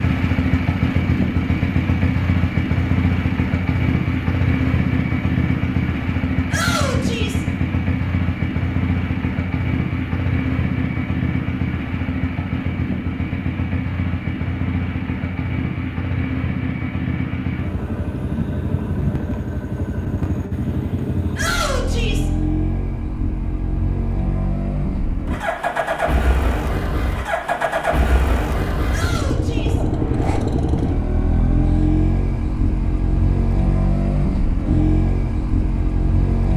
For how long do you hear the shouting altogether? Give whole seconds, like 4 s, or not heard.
3 s.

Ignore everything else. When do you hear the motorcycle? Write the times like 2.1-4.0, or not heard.
0.0-36.5.